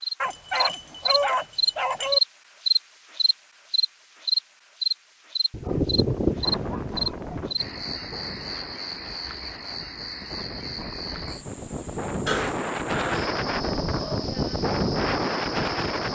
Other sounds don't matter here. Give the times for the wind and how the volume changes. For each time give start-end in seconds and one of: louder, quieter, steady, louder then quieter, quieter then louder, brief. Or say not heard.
6.0-16.0 quieter then louder.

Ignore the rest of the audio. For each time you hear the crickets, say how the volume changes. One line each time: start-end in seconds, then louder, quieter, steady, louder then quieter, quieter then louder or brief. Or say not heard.
0.0-16.0 quieter.